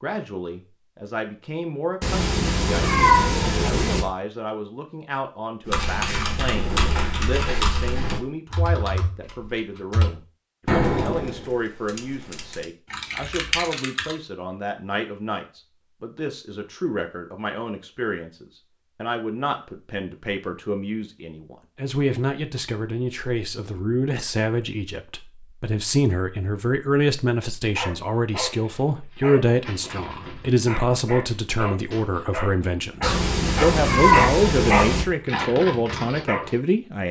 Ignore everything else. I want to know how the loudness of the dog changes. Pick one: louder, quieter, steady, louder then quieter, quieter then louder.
louder.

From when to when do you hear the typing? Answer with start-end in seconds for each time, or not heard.
5.7-14.2.